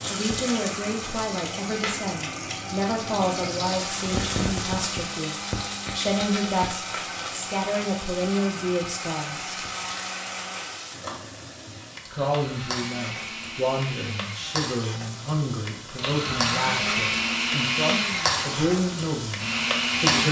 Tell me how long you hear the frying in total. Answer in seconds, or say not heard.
20 s.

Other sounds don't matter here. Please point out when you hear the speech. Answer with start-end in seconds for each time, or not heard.
0.1-9.6, 12.1-20.2.